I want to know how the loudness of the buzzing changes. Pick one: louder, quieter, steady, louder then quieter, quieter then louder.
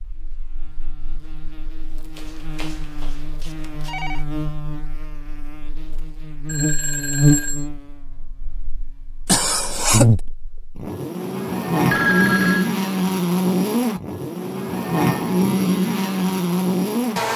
louder.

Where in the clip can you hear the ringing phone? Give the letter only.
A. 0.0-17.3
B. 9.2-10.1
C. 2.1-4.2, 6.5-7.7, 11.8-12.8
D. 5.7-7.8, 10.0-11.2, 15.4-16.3
C.